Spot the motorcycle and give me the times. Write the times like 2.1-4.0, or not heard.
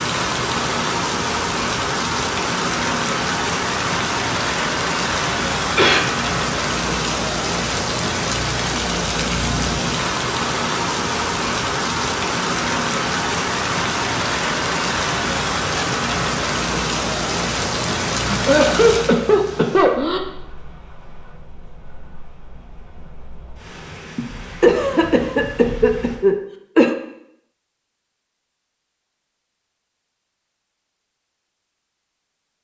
not heard.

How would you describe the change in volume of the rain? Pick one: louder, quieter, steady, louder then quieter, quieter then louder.
quieter.